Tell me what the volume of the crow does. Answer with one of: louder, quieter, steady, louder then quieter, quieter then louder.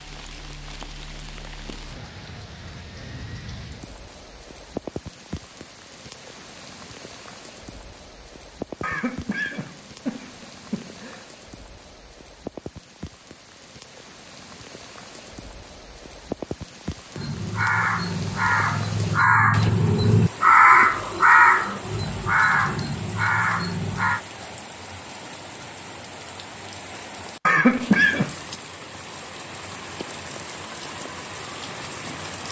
louder then quieter.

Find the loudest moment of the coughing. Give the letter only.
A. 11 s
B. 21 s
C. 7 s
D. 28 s
D.